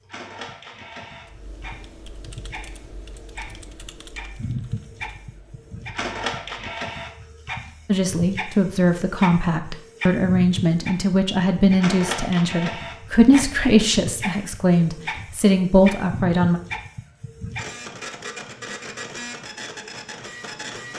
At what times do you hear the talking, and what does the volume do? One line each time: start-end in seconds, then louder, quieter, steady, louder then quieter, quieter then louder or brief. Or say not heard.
7.8-16.6 steady.